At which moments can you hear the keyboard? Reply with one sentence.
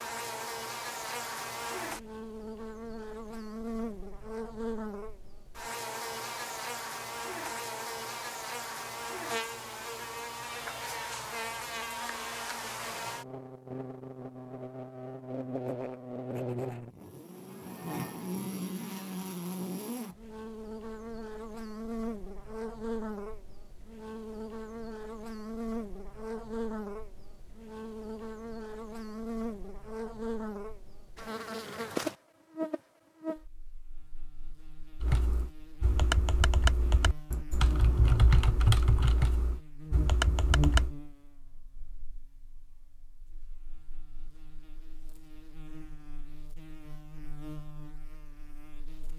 You can hear the keyboard from 35.0 to 41.0 s.